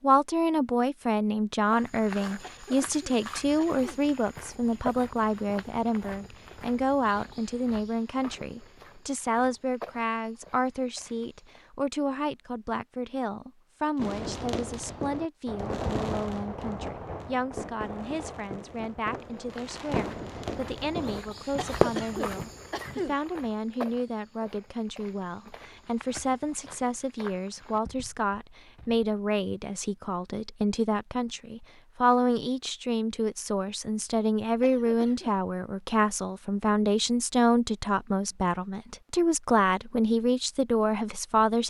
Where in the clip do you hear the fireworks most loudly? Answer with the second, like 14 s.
22 s.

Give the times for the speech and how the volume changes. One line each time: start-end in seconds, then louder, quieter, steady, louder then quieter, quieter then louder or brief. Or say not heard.
0.0-41.6 quieter then louder.